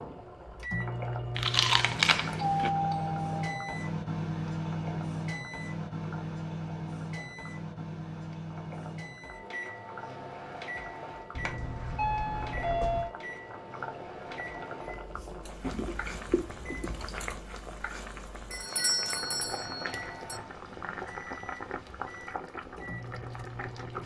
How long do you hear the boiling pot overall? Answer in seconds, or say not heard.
24 s.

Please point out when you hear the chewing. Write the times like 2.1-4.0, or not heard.
1.4-2.7, 15.6-17.4.